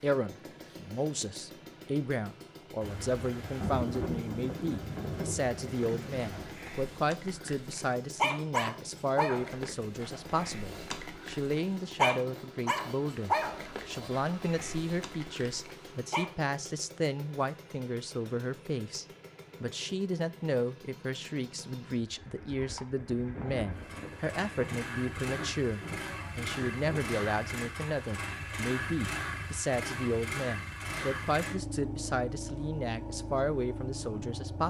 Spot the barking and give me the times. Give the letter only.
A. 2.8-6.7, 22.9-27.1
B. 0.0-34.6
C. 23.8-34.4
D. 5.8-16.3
D.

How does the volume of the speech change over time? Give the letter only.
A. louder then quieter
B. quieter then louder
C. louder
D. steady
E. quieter
D.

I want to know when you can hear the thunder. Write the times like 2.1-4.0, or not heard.
2.8-6.7, 22.9-27.1.